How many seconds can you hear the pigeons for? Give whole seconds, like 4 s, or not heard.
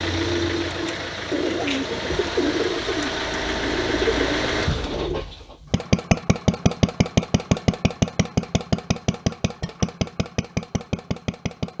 5 s.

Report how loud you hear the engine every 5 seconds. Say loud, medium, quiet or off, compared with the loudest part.
loud, loud, medium.